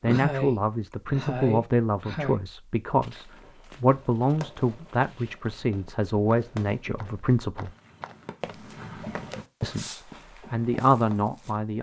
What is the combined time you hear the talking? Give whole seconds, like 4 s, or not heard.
10 s.